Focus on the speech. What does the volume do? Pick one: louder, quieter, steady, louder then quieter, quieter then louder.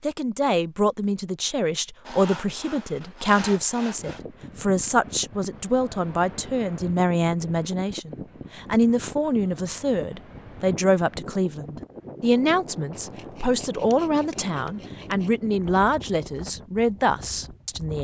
steady.